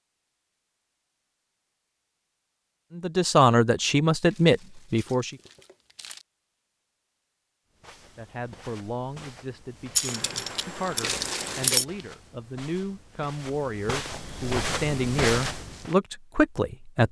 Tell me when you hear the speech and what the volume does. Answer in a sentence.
The speech can be heard briefly from 3.0 to 5.3 s; and from 8.2 to 17.0 s, getting louder.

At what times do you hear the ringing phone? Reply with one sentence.
The ringing phone can't be heard in this clip.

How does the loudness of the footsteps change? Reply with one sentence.
The loudness of the footsteps goes up.